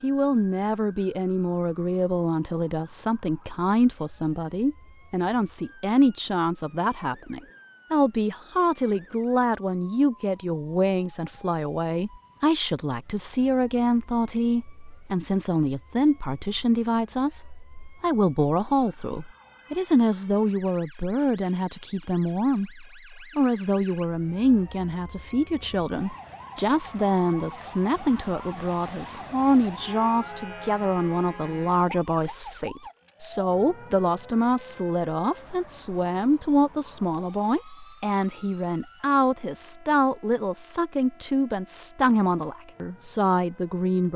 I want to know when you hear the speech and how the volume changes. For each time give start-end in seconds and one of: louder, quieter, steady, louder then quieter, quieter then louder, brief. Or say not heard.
0.0-44.1 steady.